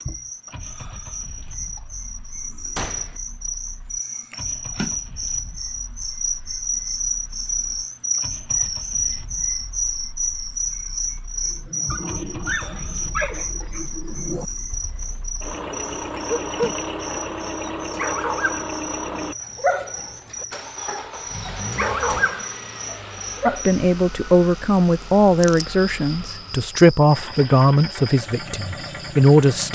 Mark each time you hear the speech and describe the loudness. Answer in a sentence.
You can hear the speech from 23.4 to 29.7 s, at a steady volume.